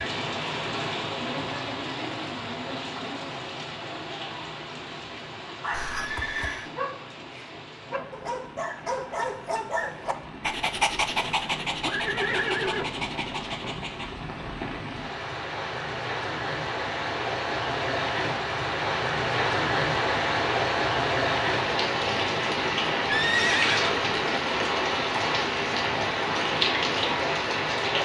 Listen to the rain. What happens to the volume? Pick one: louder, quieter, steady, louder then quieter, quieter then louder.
quieter then louder.